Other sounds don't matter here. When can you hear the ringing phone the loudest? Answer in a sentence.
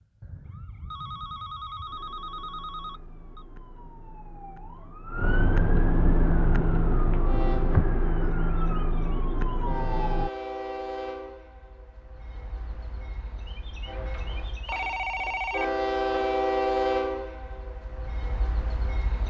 The volume of the ringing phone peaks at 15 seconds.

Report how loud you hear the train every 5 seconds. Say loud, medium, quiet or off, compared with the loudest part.
off, medium, medium, loud.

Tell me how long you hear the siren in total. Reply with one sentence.
You can hear the siren for 10 seconds altogether.